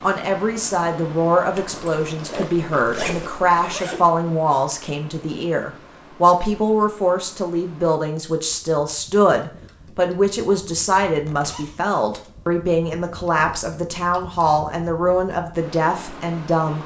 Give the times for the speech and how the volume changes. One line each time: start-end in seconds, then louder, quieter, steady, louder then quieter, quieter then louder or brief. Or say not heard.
0.0-16.8 steady.